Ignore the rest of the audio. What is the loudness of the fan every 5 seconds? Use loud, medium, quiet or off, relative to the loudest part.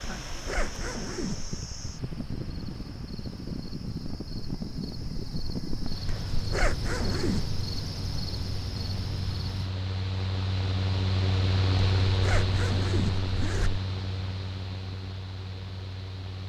medium, medium, loud, medium.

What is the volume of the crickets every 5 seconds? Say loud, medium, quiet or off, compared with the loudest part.
medium, loud, off, off.